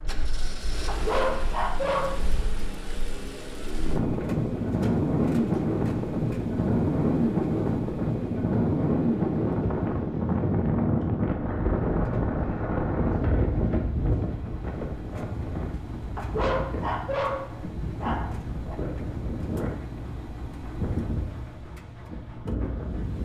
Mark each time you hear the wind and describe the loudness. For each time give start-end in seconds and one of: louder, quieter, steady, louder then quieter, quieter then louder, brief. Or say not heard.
0.0-23.1 louder then quieter.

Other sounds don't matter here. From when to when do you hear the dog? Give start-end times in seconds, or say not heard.
0.8-2.3, 16.1-18.8.